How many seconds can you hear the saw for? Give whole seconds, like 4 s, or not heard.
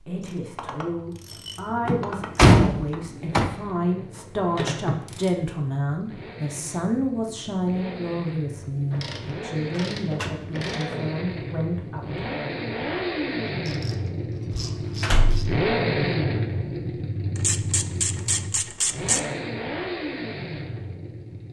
not heard.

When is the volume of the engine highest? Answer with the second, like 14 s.
16 s.